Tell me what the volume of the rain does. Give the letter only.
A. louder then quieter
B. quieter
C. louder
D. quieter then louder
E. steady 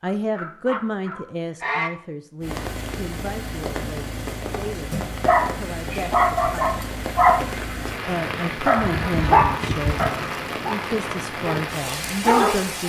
E.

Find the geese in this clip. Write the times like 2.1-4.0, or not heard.
0.1-1.9, 8.8-10.2.